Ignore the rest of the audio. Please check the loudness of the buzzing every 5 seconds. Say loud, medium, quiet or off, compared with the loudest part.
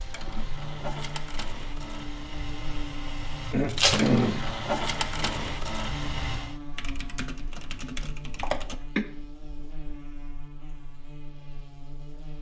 loud, loud, medium.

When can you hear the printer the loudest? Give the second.
5 s.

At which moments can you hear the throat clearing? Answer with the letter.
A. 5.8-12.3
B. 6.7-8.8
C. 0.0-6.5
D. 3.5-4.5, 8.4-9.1
D.